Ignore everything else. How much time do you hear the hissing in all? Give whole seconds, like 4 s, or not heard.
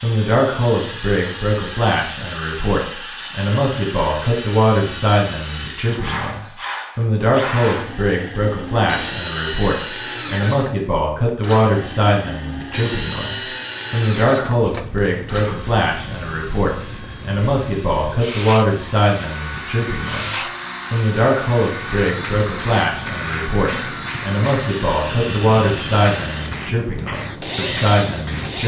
14 s.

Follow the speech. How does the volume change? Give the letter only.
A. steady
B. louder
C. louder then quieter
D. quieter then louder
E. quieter
A.